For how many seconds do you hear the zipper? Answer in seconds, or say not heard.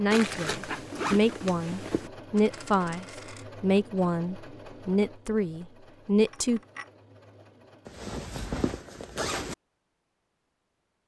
4 s.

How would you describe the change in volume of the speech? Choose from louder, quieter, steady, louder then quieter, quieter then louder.
steady.